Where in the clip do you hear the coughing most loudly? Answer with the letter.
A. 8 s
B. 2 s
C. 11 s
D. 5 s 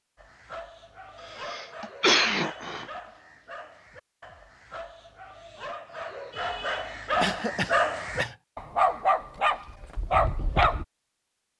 B.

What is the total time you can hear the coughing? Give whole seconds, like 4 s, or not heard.
3 s.